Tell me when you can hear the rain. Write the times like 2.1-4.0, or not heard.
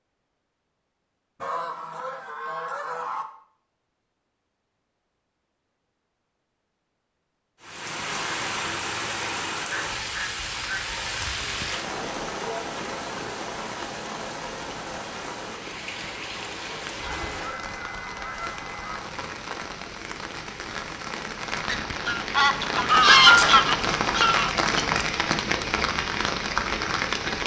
7.6-27.4.